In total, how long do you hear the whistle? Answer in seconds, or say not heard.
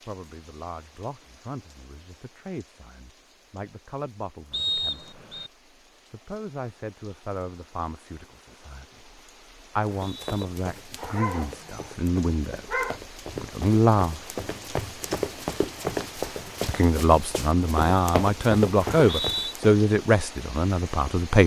2 s.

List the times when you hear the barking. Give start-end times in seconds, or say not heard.
10.9-13.0.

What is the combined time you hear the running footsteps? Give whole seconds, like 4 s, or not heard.
10 s.